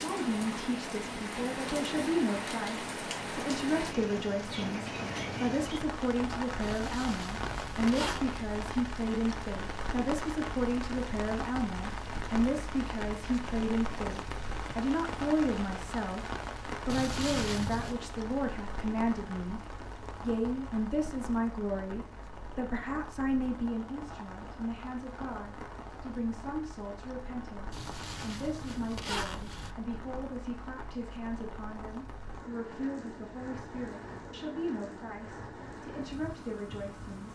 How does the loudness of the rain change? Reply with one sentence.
The loudness of the rain goes down.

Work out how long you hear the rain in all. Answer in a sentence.
You can hear the rain for 37 seconds altogether.